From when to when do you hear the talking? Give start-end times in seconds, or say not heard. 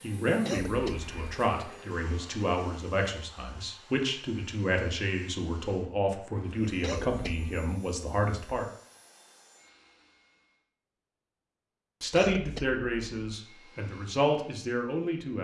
0.0-8.7, 12.0-15.3.